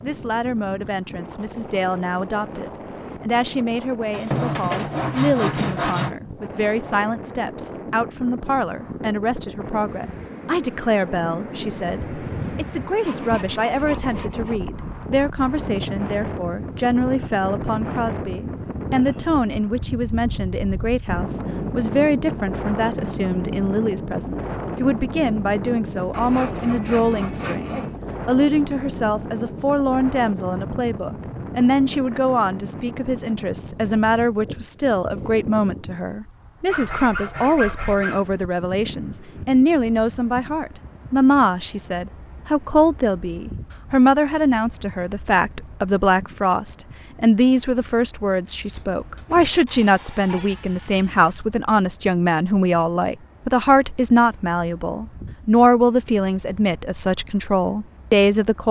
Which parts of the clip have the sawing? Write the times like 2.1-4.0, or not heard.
4.1-6.2, 13.1-14.6, 26.1-27.9, 36.7-38.2, 48.8-51.3.